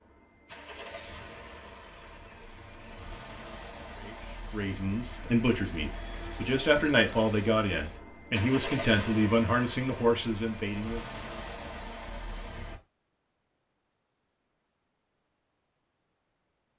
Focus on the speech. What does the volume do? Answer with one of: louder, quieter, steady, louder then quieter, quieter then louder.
steady.